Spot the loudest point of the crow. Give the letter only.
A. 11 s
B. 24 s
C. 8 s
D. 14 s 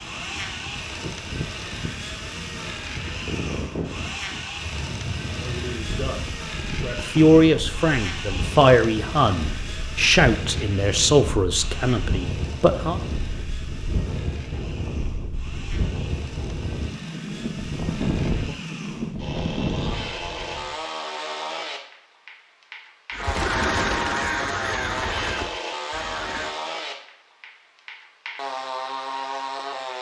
B.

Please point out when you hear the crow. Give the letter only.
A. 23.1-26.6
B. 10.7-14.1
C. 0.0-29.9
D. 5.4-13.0
A.